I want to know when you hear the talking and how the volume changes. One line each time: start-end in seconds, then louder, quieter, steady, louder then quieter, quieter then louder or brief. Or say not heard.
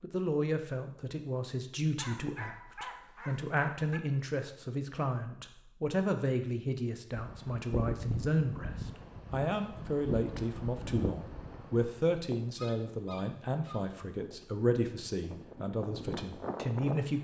0.0-17.1 steady.